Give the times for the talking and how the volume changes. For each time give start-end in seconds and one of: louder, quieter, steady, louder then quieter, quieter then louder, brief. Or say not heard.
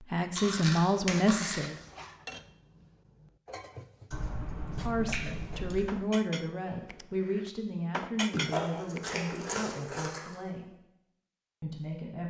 0.0-1.8 brief
4.8-10.7 quieter
11.6-12.2 brief.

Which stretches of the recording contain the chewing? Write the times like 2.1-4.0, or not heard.
0.3-2.0, 4.1-5.9, 8.3-10.3.